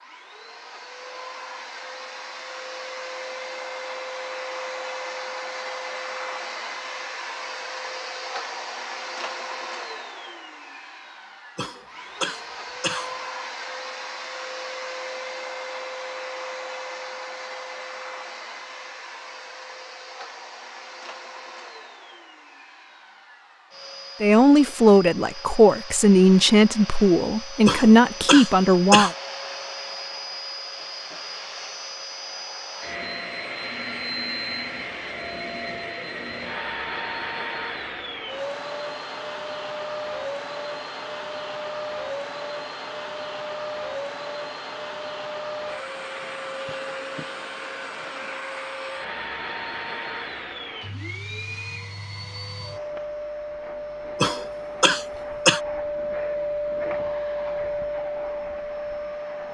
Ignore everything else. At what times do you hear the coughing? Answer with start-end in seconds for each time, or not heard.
11.6-13.1, 27.6-29.1, 54.2-55.6.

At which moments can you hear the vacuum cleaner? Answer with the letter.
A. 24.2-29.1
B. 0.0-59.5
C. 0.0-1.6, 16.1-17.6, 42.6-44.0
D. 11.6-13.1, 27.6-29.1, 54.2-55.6
B.